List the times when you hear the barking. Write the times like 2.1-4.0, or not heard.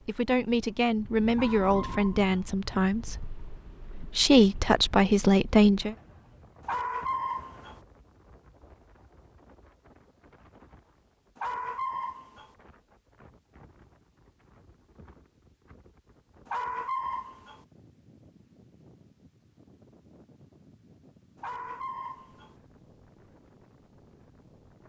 1.3-2.5, 6.6-7.8, 11.3-12.5, 16.4-17.6, 21.4-22.6.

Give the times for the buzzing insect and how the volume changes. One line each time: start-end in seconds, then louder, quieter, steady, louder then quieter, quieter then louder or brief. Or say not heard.
not heard.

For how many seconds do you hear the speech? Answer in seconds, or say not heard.
6 s.